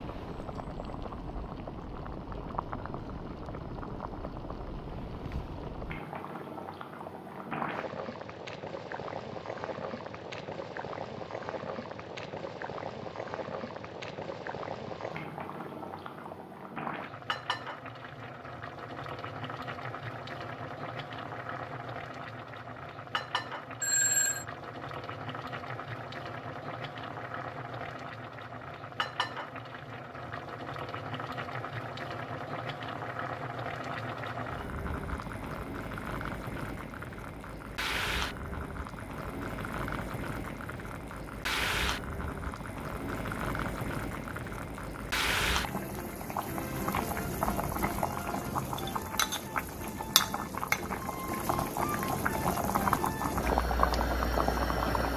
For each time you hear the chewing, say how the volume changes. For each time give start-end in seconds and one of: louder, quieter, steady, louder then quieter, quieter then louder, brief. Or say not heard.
not heard.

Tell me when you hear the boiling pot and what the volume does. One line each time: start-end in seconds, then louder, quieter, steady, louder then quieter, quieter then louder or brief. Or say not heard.
0.0-55.1 louder.